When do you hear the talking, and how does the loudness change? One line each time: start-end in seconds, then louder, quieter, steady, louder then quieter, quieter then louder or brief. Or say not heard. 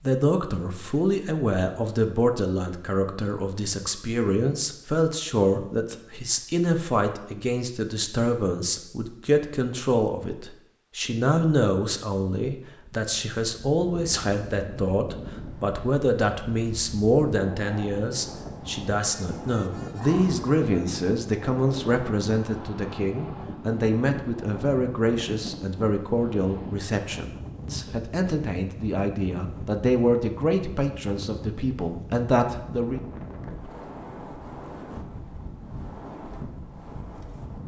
0.0-33.0 steady.